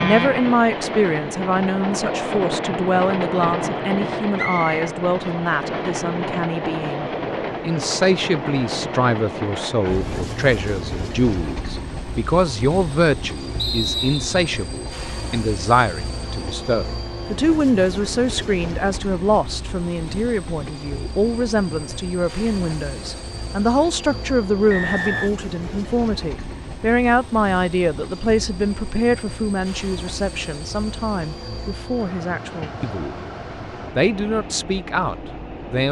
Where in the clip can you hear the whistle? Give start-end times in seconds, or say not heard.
4.3-4.8, 13.6-14.3, 24.7-25.3.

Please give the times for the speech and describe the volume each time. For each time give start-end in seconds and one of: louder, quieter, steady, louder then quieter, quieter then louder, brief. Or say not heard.
0.0-33.1 steady
34.0-35.8 brief.